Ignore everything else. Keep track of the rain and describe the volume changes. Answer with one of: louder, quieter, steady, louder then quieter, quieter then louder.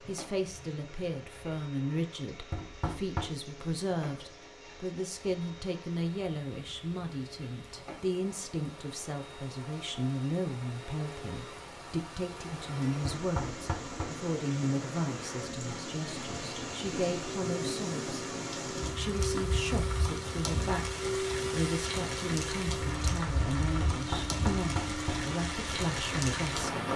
louder.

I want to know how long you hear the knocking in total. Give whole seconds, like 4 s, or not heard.
3 s.